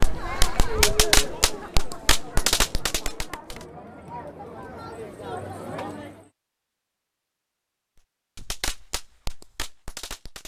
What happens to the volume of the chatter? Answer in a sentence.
The loudness of the chatter goes down, then up.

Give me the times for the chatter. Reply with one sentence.
You can hear the chatter from 0.0 to 6.3 s.